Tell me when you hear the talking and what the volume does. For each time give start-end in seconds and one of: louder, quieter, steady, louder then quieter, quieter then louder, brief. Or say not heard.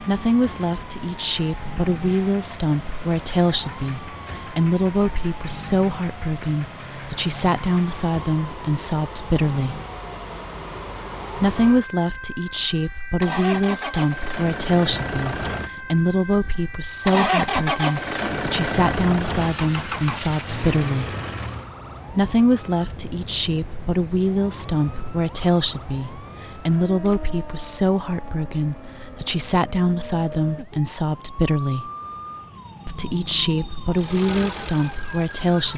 0.0-9.8 steady
11.3-21.1 steady
22.1-31.9 steady
32.9-35.7 brief.